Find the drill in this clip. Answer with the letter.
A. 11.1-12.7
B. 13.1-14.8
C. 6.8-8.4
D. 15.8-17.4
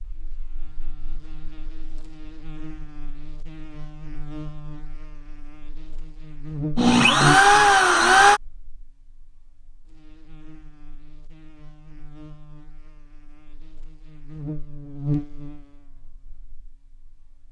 C.